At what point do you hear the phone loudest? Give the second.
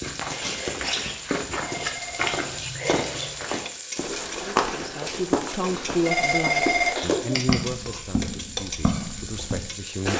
7 s.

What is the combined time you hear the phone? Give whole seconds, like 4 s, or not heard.
3 s.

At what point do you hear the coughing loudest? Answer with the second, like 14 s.
7 s.